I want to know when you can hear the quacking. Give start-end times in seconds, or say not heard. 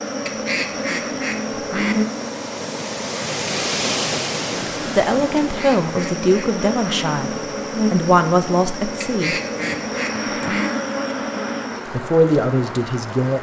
0.2-2.0, 5.5-7.2, 9.0-10.7.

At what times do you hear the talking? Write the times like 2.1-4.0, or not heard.
5.0-9.3, 11.9-13.3.